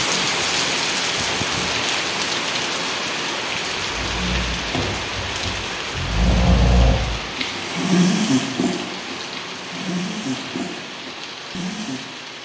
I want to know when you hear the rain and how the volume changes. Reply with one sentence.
The rain can be heard from 0.0 to 12.4 s, getting quieter.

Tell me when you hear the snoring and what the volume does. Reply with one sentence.
The snoring can be heard from 3.8 to 12.1 s, getting louder then quieter.